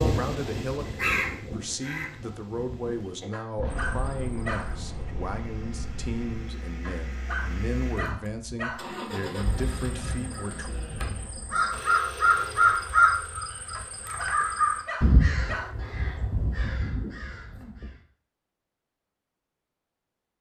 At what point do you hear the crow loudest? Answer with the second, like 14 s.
13 s.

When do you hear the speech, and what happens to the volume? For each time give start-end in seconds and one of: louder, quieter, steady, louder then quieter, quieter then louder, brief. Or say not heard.
0.0-10.7 steady.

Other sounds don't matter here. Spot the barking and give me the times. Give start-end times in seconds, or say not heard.
3.3-5.2, 6.8-8.8, 13.7-15.8.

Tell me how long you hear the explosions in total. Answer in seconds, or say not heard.
3 s.